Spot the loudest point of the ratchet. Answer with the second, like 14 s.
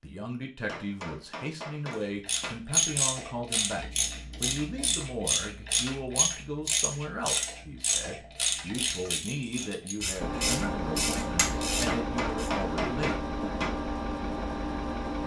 3 s.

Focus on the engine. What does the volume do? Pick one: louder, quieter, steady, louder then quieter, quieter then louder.
steady.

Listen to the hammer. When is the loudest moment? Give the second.
13 s.